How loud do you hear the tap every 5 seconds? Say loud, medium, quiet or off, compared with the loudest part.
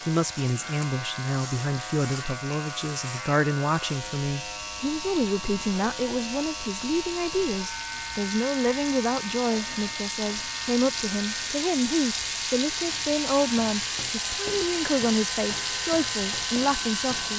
quiet, medium, loud, loud.